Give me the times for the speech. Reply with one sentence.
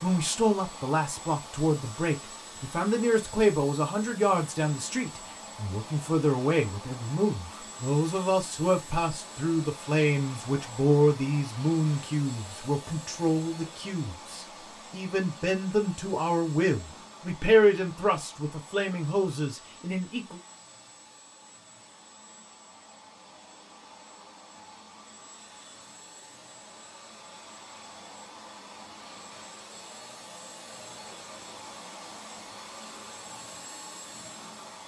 The speech can be heard from 0.0 to 20.4 s.